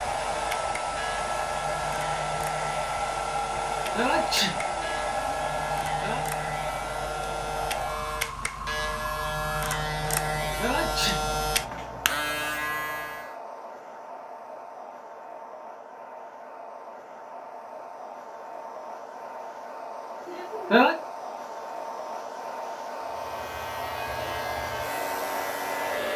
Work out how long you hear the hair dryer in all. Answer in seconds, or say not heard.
26 s.